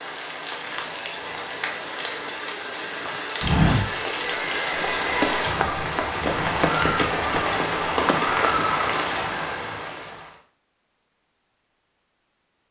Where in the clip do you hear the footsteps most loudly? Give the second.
4 s.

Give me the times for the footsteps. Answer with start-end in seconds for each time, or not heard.
3.4-8.6.